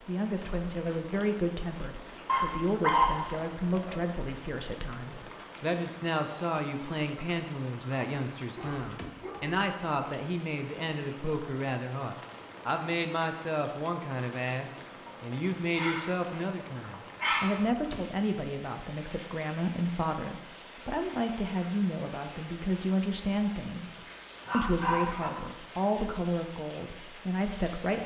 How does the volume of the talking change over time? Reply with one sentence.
The volume of the talking stays about the same.